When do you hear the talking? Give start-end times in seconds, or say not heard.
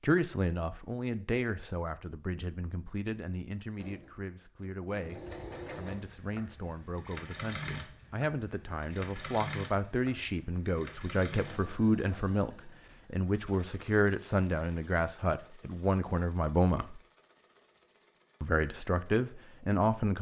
0.0-17.0, 18.4-20.1.